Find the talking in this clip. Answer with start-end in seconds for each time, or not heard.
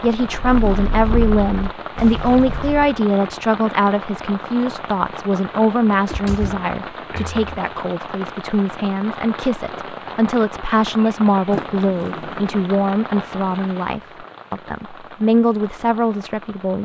0.0-16.8.